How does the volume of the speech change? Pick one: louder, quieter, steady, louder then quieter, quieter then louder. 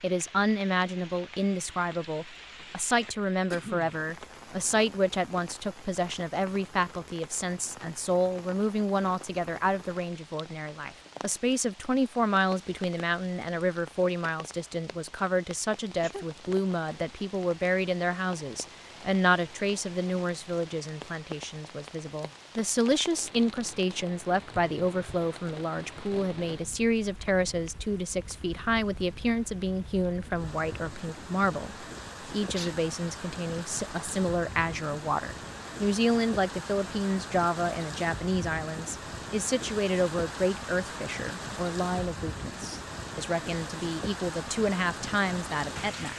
steady.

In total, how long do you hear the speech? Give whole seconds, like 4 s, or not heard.
46 s.